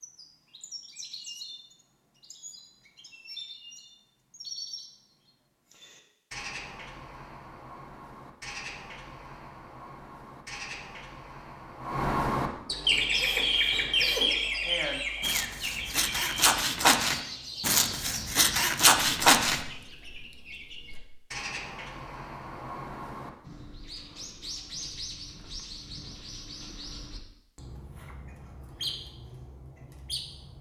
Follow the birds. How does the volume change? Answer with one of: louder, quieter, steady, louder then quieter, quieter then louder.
louder then quieter.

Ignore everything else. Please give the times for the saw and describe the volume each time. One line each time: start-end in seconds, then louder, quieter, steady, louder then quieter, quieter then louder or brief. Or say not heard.
12.9-19.6 louder.